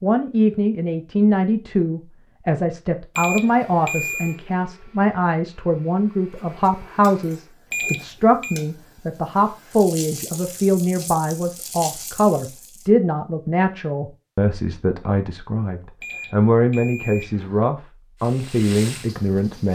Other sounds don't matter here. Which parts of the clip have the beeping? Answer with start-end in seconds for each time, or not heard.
3.1-4.3, 7.7-8.6, 16.0-17.6.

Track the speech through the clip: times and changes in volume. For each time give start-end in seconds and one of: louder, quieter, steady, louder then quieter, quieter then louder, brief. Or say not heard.
0.0-19.7 steady.